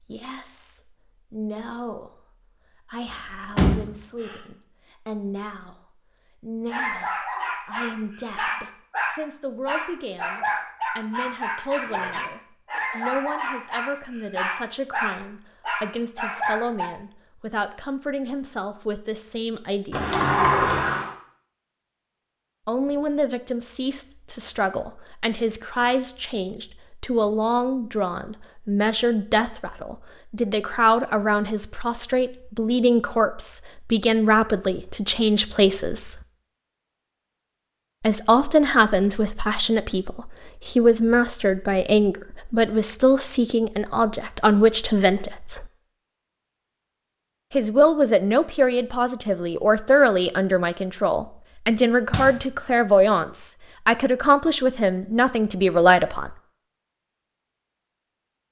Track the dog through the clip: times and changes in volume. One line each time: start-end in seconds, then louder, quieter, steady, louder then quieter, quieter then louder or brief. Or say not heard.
6.7-16.9 steady.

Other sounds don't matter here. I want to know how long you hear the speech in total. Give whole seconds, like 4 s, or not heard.
50 s.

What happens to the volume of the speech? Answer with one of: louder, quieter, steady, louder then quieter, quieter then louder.
louder.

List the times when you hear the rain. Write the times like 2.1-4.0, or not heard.
not heard.